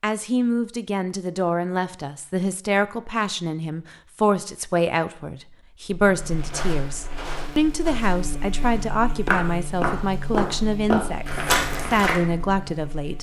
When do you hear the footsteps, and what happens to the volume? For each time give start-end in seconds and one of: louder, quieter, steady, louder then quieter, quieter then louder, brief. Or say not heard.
6.2-12.2 quieter then louder.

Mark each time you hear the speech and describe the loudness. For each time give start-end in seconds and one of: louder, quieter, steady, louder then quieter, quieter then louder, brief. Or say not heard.
0.0-13.1 steady.